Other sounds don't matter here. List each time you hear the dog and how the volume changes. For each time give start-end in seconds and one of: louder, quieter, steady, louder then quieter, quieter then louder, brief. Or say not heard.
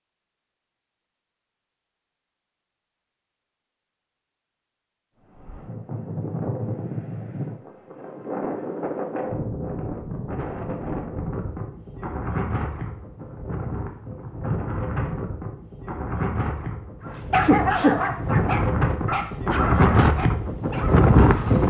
17.1-21.6 quieter.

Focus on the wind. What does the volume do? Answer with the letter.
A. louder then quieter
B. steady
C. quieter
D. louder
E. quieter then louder
D.